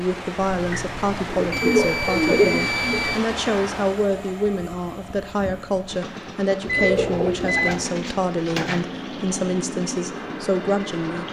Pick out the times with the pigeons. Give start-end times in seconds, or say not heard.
0.7-3.1, 6.0-8.8.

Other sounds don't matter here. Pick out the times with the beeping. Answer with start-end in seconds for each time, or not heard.
0.4-3.2, 6.7-7.8.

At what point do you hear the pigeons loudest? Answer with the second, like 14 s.
2 s.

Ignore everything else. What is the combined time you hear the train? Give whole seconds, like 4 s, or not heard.
11 s.